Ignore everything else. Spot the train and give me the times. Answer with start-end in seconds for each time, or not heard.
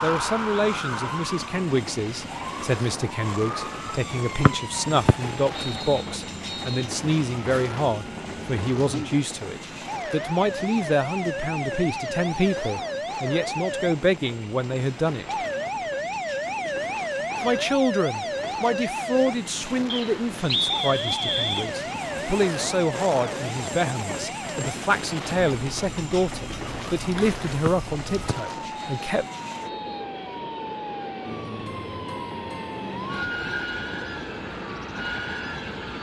0.0-35.9.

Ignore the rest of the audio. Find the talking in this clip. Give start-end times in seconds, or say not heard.
0.0-15.3, 17.4-29.2.